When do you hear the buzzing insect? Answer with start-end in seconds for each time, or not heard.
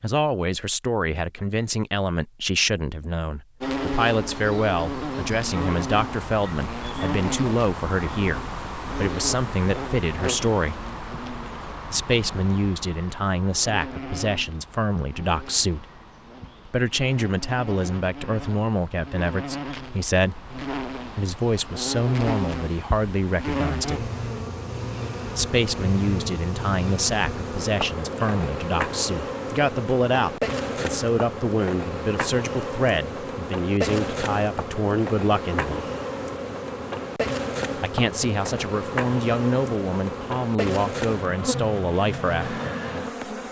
3.6-43.4.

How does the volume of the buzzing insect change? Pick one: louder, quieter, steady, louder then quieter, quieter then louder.
quieter then louder.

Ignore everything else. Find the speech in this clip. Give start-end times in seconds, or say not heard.
0.0-10.8, 11.9-15.8, 16.6-24.1, 25.3-35.9, 37.8-42.6.